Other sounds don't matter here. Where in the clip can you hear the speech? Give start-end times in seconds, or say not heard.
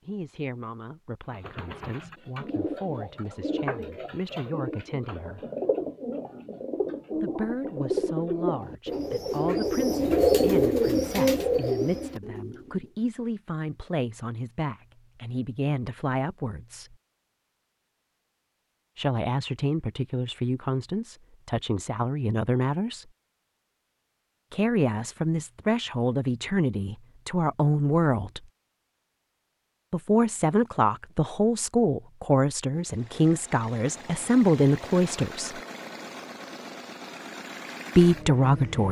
0.1-5.4, 7.2-16.9, 18.9-23.1, 24.5-28.4, 29.9-35.5, 38.0-38.8.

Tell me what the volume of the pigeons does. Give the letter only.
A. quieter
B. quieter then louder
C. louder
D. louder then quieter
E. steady
C.